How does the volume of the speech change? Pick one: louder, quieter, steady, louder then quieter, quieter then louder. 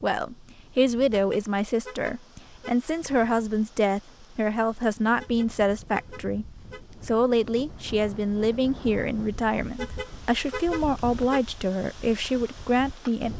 steady.